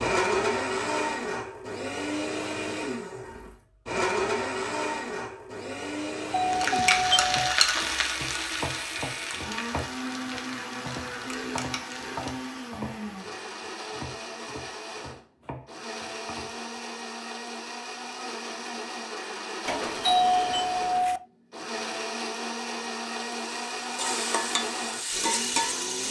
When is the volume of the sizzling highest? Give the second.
7 s.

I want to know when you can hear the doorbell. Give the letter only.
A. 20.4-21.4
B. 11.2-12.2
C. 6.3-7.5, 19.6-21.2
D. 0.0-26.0
C.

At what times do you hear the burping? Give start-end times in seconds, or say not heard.
11.2-12.2.